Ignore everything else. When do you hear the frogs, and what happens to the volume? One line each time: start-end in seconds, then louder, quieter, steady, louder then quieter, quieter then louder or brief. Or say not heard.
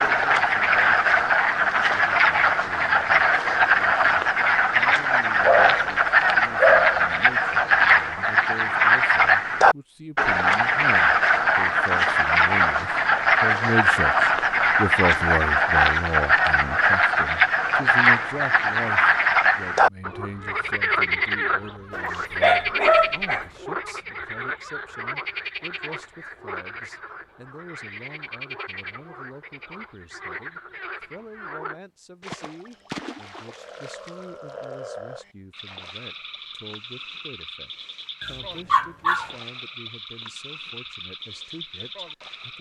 0.0-42.5 quieter.